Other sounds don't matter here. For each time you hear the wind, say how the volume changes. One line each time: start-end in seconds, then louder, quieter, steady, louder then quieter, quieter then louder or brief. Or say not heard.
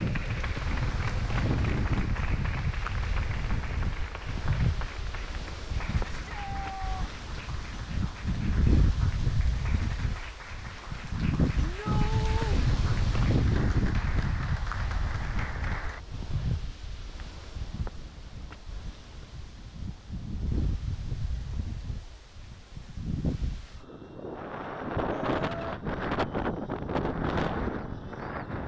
0.0-28.6 quieter then louder.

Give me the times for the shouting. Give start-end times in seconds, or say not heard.
6.2-7.0, 11.6-12.7, 25.1-25.8.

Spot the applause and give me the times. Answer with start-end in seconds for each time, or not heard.
0.0-16.1.